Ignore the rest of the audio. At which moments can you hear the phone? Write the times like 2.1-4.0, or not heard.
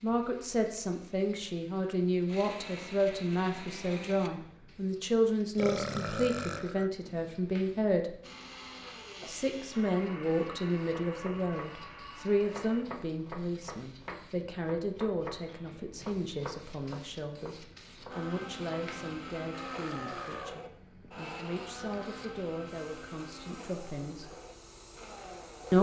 not heard.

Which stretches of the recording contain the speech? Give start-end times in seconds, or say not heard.
0.0-8.2, 9.2-24.3.